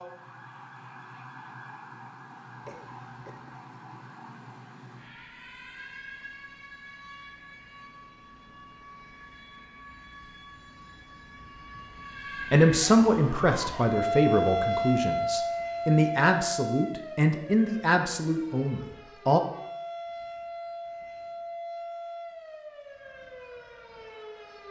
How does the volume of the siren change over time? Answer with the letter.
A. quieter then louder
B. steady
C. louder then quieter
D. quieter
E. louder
C.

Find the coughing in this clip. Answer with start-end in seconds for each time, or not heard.
2.6-3.6.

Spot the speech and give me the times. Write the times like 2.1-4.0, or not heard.
12.4-19.4.